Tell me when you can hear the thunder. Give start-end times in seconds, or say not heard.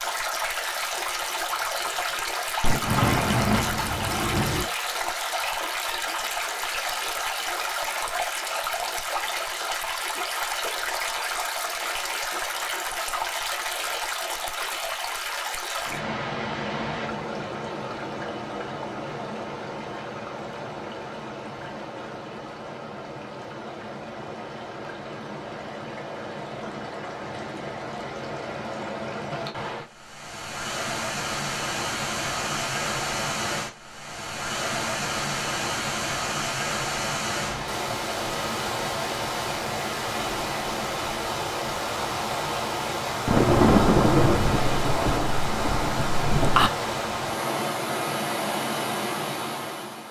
2.6-4.7, 43.2-46.7.